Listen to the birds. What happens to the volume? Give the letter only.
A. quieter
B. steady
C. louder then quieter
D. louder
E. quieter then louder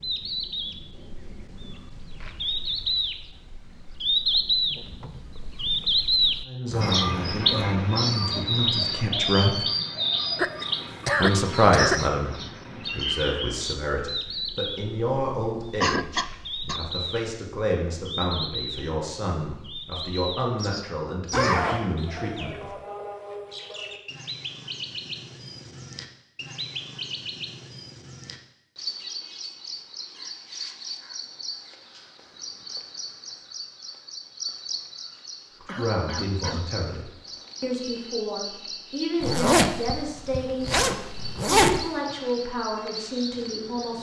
A.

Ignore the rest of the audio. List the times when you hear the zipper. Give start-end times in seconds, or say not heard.
6.7-7.8, 21.3-21.9, 39.2-41.8.